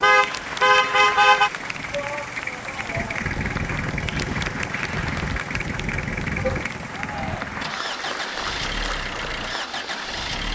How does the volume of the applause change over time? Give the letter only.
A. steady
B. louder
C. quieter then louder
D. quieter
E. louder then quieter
A.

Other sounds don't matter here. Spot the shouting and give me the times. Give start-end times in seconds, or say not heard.
1.9-3.2, 6.9-7.5.